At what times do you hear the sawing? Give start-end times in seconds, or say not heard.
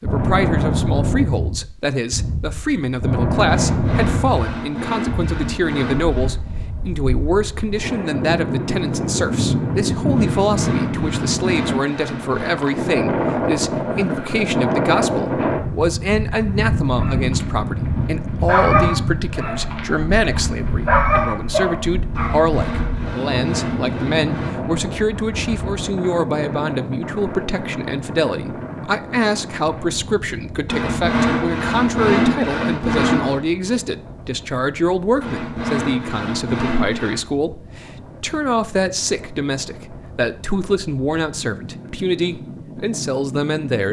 3.5-6.3, 10.2-12.6, 22.1-24.6, 30.6-33.4, 35.2-37.2.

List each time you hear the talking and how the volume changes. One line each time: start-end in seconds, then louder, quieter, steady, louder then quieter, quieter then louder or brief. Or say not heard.
0.0-43.8 steady.